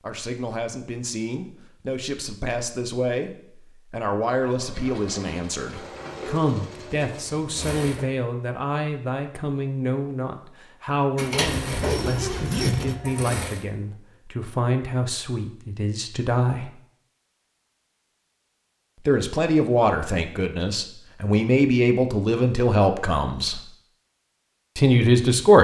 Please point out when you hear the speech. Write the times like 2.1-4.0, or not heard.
0.0-16.7, 19.1-23.6, 24.8-25.6.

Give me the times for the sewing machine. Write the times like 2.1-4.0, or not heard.
4.4-8.1, 11.2-13.7.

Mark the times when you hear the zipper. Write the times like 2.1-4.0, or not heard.
11.4-13.0.